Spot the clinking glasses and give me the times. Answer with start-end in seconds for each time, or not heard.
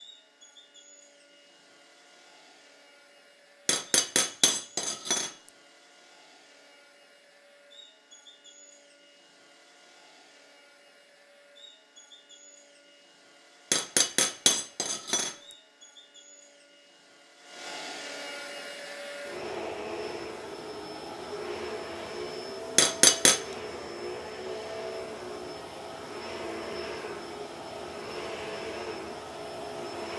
3.6-5.3, 13.7-15.3, 22.8-23.4.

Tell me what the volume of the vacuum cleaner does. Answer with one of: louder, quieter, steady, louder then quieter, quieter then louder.
louder.